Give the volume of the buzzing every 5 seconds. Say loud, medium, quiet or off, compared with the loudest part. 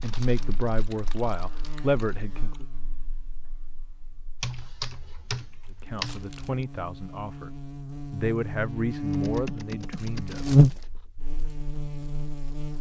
quiet, medium, loud.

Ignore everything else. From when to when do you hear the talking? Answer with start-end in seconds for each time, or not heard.
0.0-2.6, 5.8-10.7.